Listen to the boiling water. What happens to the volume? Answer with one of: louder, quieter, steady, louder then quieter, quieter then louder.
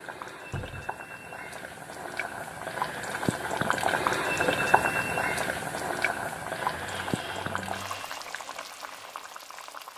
louder then quieter.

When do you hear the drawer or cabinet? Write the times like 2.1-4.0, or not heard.
0.5-0.9, 6.7-8.2.